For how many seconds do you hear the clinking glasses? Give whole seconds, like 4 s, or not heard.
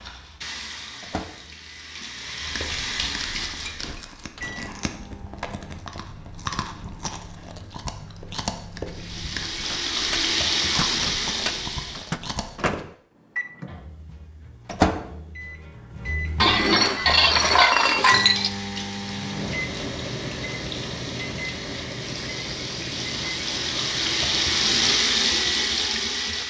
3 s.